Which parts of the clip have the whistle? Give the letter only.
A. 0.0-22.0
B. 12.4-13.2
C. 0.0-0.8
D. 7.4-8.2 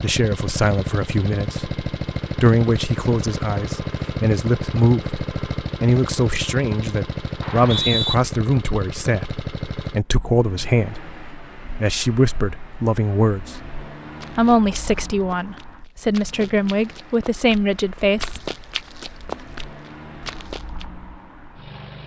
D.